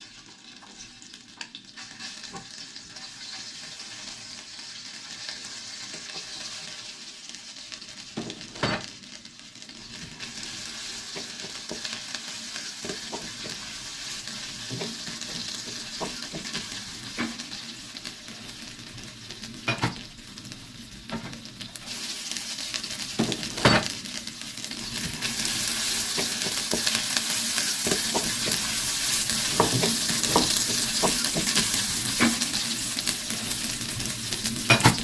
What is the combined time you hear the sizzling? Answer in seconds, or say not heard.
35 s.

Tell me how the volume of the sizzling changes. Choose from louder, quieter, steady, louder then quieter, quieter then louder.
louder.